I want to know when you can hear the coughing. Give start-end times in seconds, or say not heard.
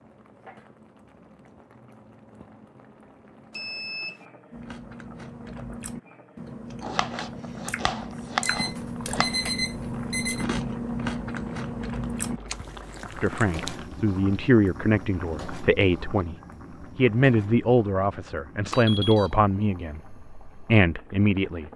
not heard.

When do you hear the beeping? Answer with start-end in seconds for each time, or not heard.
3.5-4.2, 8.4-10.4, 18.7-19.3.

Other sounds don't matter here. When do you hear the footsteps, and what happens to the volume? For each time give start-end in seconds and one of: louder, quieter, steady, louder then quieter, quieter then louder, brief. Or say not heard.
not heard.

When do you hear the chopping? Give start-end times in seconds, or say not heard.
6.8-9.4.